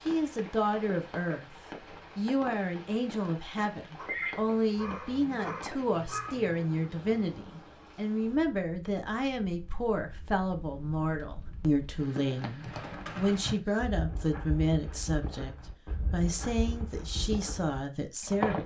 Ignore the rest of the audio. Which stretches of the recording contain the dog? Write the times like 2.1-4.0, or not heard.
4.0-6.6.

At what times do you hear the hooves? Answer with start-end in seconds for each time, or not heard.
12.6-18.6.